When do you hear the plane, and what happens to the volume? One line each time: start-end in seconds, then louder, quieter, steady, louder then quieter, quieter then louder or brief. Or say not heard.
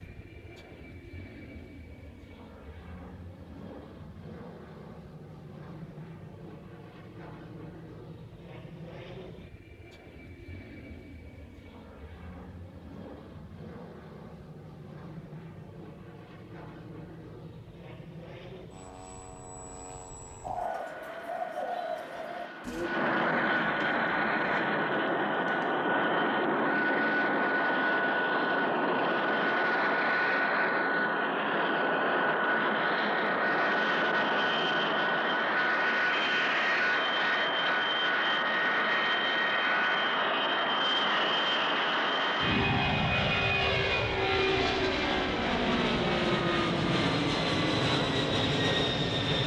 0.0-49.4 louder.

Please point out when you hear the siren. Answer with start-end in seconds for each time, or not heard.
not heard.